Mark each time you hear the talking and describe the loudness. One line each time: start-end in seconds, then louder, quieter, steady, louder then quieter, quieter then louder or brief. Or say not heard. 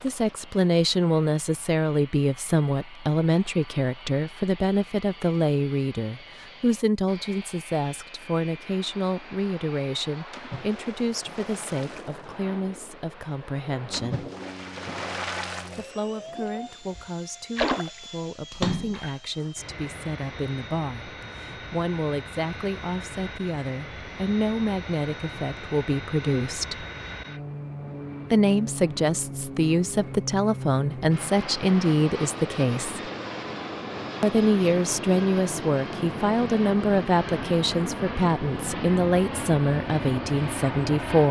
0.0-14.3 quieter
15.8-26.9 louder
28.3-33.1 steady
34.2-41.2 steady.